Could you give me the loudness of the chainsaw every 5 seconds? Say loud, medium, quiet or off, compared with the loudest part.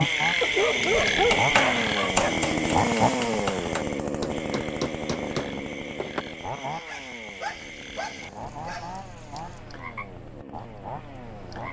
loud, medium, quiet.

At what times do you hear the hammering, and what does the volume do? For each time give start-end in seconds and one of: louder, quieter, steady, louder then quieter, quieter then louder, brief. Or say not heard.
0.8-6.2 quieter.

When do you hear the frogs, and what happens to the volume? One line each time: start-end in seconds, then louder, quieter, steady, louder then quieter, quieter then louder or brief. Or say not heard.
0.0-11.6 quieter.